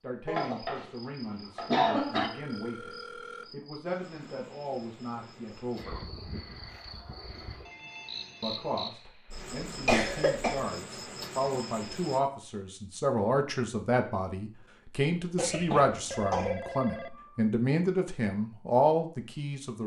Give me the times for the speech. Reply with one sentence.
You can hear the speech from 0.0 to 6.0 s and from 8.4 to 19.8 s.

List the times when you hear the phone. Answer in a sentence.
The phone can be heard from 2.1 to 3.5 s, from 7.7 to 8.8 s and from 16.1 to 17.4 s.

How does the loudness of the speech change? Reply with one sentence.
The volume of the speech goes up.